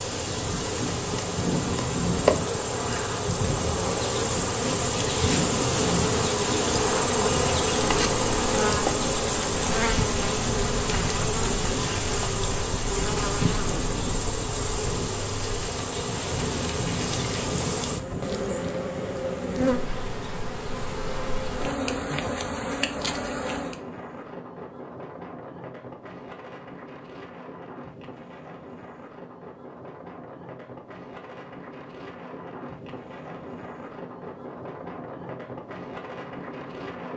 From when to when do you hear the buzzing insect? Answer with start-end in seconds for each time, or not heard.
0.0-23.8.